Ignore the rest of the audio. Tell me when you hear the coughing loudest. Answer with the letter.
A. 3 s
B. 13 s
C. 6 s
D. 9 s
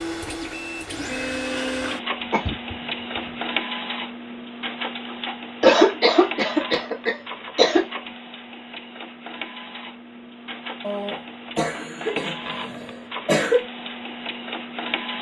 C.